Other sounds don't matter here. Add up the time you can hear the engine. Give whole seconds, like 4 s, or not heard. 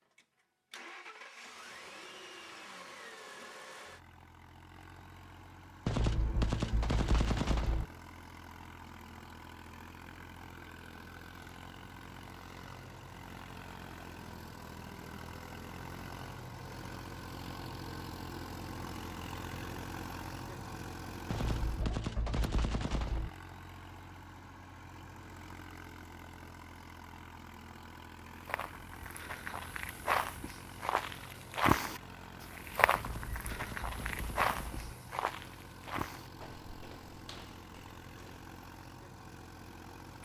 40 s.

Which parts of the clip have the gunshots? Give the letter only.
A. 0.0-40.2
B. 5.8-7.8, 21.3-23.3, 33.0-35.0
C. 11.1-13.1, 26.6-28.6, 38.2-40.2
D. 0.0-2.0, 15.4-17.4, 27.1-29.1
B.